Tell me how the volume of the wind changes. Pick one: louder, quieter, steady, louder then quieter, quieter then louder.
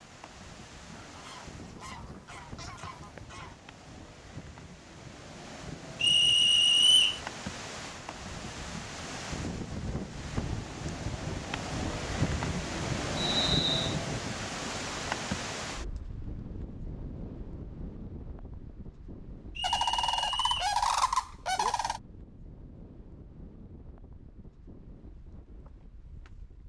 louder then quieter.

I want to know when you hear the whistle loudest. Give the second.
7 s.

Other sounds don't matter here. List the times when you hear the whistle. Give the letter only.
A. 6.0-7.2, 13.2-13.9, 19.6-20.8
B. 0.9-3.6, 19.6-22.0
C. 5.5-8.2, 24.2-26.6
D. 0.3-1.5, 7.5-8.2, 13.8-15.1
A.